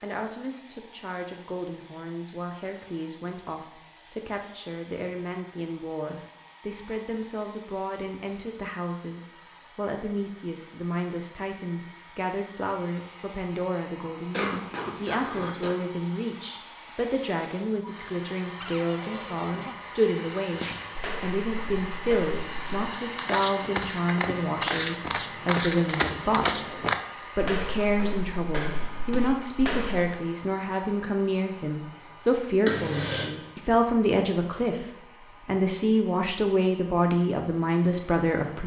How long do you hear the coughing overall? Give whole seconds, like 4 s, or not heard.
2 s.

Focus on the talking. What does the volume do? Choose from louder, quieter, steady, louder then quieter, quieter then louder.
louder.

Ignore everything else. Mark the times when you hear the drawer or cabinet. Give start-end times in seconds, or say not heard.
18.6-19.8.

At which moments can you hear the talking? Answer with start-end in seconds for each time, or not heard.
0.0-38.6.